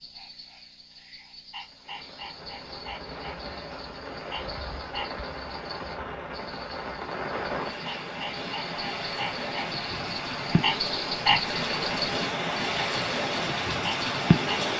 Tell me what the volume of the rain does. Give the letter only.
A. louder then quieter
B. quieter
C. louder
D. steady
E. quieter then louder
C.